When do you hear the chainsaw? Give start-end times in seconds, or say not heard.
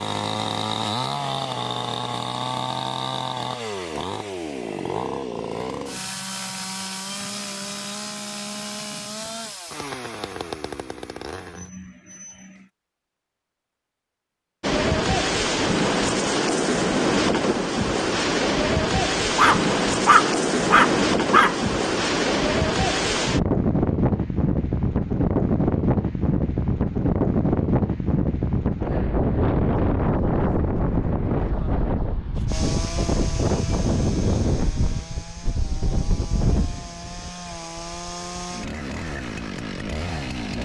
0.0-12.7, 32.5-40.6.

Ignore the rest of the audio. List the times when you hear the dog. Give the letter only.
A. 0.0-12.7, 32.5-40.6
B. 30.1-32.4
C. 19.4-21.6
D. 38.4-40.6
C.